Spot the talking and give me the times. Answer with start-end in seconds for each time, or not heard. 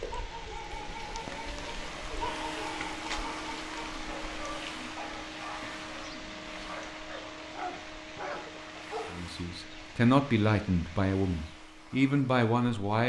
9.1-13.0.